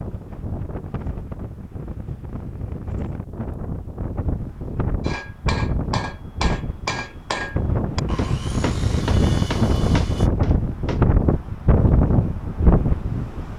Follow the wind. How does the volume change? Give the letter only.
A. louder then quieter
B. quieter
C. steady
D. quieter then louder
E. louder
E.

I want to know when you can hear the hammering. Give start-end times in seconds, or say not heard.
5.0-11.1.